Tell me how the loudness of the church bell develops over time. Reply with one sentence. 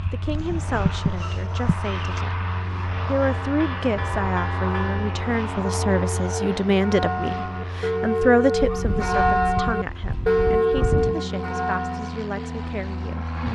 The loudness of the church bell goes up.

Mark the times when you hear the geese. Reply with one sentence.
You can hear the geese from 0.3 to 2.2 s and from 8.6 to 11.2 s.